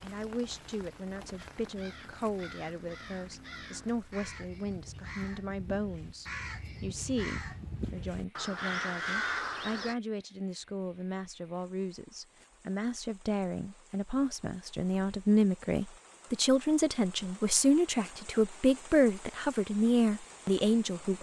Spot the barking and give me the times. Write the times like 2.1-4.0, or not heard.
not heard.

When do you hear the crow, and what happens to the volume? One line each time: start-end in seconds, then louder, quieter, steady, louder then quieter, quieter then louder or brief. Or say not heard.
1.4-9.9 louder.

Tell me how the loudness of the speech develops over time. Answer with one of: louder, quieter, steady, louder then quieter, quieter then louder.
louder.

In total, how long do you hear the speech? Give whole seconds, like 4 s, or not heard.
21 s.